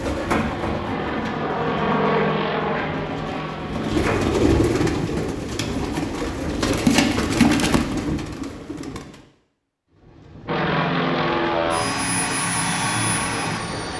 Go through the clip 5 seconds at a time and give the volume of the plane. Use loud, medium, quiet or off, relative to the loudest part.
loud, off, loud.